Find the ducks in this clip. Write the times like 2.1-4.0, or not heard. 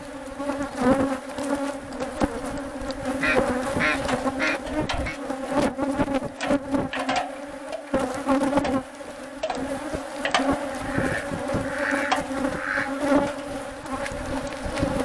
3.0-5.2, 10.7-12.9.